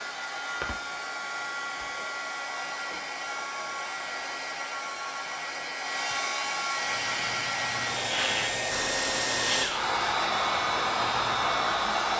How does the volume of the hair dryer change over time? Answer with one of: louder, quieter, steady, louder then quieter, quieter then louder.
louder.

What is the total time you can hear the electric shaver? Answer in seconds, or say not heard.
3 s.